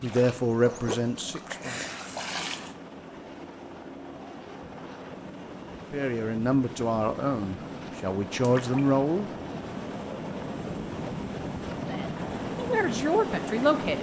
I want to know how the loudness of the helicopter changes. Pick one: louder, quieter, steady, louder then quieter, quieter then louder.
louder.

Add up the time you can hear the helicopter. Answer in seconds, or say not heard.
14 s.